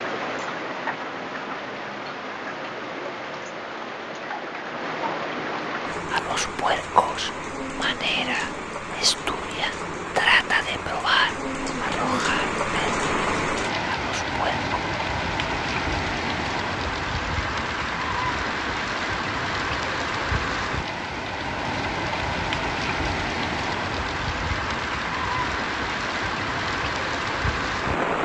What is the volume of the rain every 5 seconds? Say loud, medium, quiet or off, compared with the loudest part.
medium, medium, loud, loud, loud, loud.